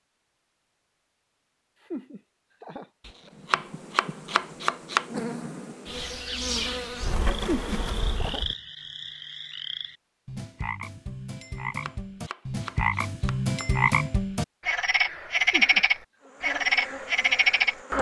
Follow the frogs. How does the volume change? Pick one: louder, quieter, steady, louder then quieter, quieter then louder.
louder.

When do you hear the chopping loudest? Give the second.
5 s.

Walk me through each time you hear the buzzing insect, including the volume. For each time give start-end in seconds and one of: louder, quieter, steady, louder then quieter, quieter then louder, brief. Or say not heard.
3.2-8.6 louder
16.2-17.9 brief.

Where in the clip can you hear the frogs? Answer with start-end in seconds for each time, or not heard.
7.5-17.9.